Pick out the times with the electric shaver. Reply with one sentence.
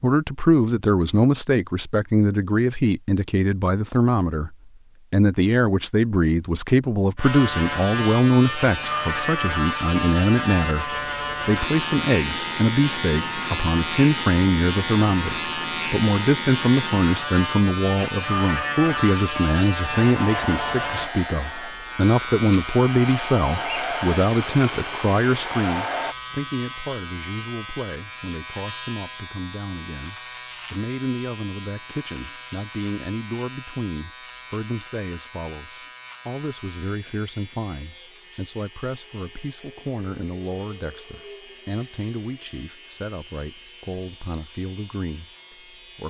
You can hear the electric shaver from 7.2 to 46.0 s.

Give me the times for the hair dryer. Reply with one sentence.
The hair dryer can be heard from 19.9 to 26.1 s.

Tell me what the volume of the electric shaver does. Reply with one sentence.
The volume of the electric shaver goes down.